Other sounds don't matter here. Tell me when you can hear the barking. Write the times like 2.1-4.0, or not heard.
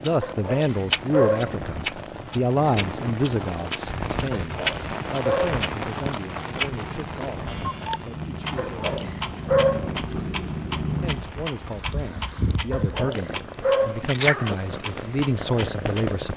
0.2-1.6, 4.4-5.5, 8.6-10.1, 12.7-14.2.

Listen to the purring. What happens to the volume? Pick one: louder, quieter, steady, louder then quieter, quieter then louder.
louder.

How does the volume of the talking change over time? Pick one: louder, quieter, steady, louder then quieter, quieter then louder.
quieter then louder.